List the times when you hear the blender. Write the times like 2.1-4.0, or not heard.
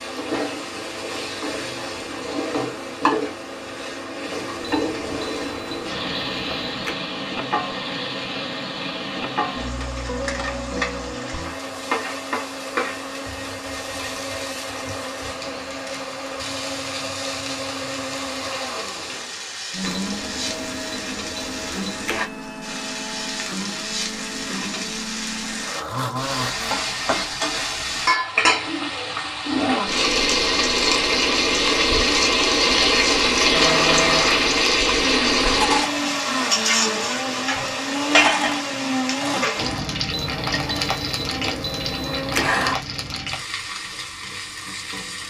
0.0-26.8, 33.5-42.8.